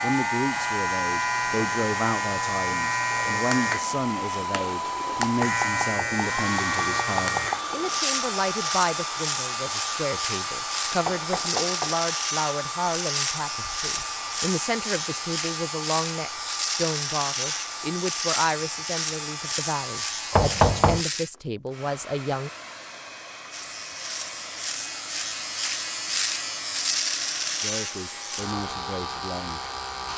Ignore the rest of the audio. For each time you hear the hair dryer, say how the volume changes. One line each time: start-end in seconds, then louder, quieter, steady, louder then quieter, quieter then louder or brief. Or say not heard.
0.0-30.1 quieter.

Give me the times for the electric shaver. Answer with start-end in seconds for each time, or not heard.
0.0-21.3, 23.5-30.1.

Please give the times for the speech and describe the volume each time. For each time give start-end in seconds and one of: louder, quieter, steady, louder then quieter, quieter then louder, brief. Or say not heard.
0.0-22.5 steady
27.6-30.1 brief.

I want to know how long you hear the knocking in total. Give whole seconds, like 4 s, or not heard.
4 s.